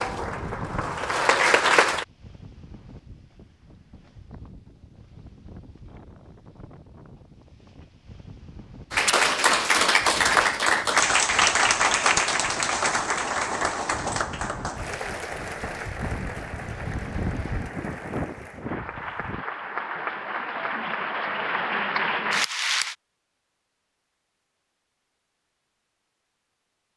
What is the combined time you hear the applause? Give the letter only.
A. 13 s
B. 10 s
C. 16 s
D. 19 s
C.